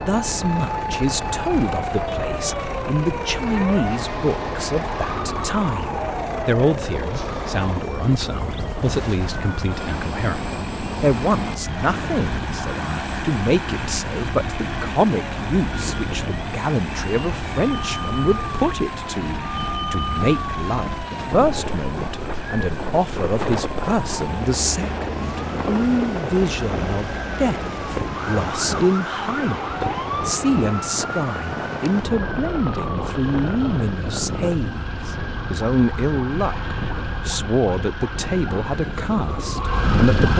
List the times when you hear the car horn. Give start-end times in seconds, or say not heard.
not heard.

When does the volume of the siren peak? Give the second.
40 s.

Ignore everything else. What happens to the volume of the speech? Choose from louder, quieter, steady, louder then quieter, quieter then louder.
steady.